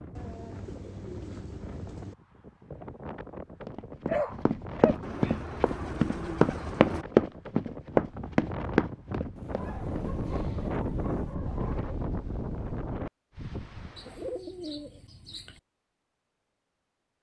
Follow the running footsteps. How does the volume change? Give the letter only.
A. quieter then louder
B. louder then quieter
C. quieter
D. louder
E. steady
B.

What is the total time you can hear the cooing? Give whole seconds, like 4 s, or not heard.
8 s.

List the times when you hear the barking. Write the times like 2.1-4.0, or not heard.
4.0-5.3, 9.4-11.9.